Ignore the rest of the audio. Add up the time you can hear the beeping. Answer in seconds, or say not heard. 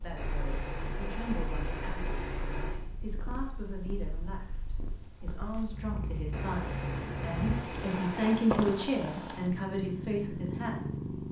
5 s.